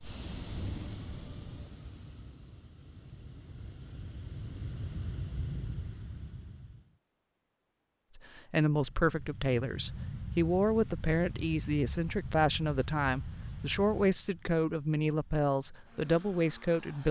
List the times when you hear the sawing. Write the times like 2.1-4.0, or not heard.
not heard.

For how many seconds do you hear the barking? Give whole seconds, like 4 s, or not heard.
not heard.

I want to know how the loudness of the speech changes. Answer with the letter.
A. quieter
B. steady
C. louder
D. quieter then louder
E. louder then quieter
B.